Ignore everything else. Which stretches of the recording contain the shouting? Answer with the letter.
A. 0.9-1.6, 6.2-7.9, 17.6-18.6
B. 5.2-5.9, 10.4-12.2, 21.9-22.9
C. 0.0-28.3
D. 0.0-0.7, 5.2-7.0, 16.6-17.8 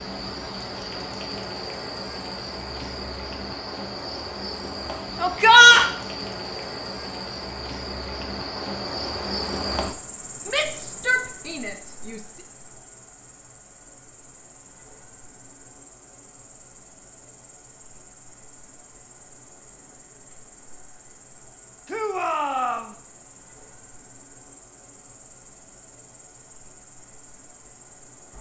B.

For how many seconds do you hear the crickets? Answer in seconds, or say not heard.
28 s.